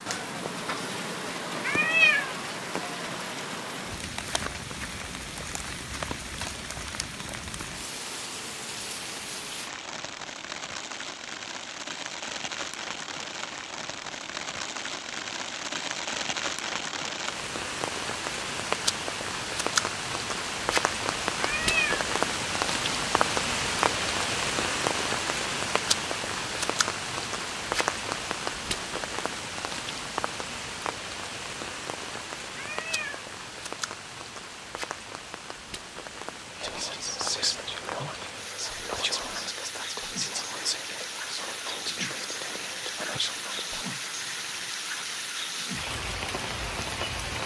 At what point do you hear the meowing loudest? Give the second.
2 s.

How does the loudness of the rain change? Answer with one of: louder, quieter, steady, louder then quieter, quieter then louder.
louder then quieter.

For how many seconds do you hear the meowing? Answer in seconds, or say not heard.
2 s.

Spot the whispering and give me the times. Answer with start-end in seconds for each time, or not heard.
36.5-44.1.